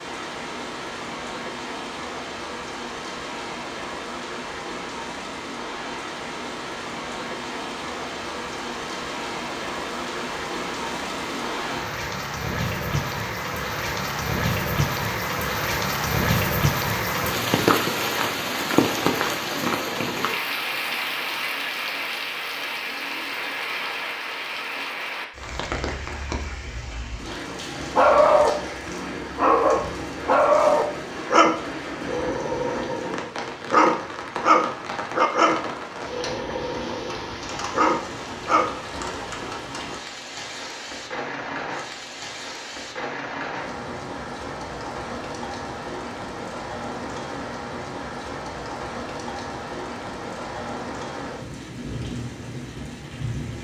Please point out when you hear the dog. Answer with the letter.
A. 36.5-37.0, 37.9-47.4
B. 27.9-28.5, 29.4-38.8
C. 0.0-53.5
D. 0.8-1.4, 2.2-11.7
B.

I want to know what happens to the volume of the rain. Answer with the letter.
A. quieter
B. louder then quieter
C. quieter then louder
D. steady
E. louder
B.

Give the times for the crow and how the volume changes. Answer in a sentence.
You can't hear the crow here.